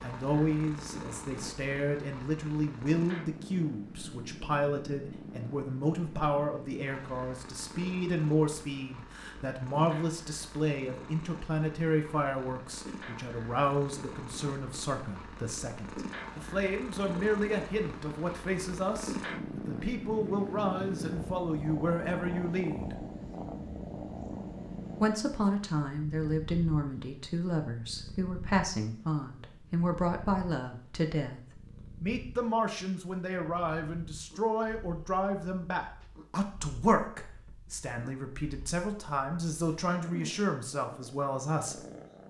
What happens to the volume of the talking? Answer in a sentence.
The volume of the talking stays about the same.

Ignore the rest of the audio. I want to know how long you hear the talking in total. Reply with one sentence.
The talking can be heard for 40 seconds in total.